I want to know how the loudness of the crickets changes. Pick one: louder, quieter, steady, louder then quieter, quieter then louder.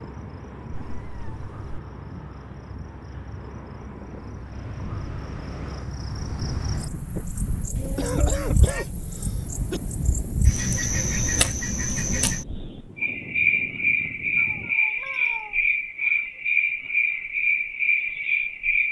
louder.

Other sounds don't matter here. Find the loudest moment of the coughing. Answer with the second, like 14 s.
8 s.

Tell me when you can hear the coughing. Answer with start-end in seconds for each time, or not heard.
7.8-9.8.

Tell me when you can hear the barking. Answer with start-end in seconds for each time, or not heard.
not heard.